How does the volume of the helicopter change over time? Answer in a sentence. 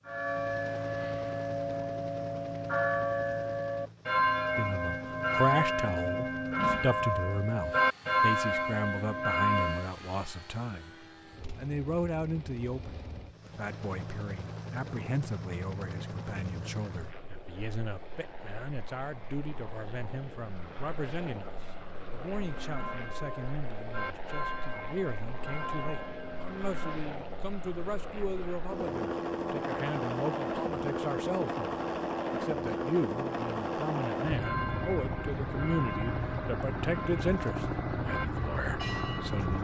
The volume of the helicopter goes up.